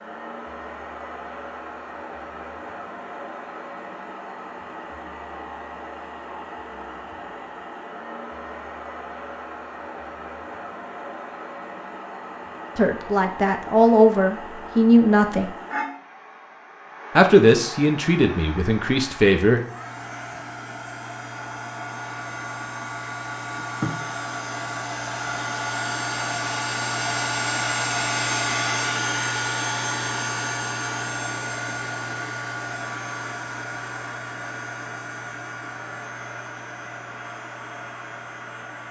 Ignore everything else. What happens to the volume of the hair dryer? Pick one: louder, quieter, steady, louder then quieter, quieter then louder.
louder then quieter.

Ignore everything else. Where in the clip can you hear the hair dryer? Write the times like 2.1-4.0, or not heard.
0.0-38.8.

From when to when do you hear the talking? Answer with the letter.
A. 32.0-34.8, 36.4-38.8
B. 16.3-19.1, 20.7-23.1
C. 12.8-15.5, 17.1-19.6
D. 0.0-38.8
C.